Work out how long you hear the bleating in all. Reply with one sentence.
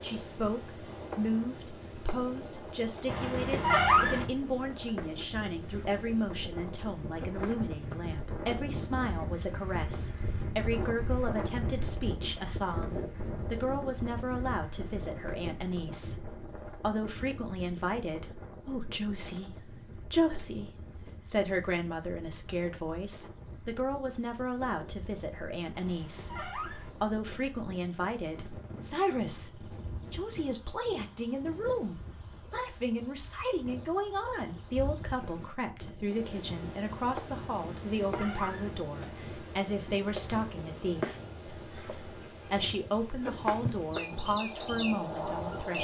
The bleating can't be heard in this clip.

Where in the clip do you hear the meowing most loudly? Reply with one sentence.
The volume of the meowing peaks at 4 seconds.